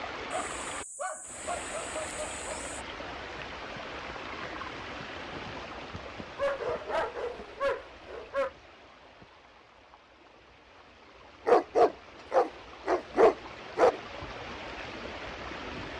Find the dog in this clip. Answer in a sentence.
You can hear the dog from 0.3 to 2.8 s, from 6.3 to 8.5 s and from 11.4 to 14.0 s.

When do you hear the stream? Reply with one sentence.
The stream can be heard from 0.0 to 15.9 s.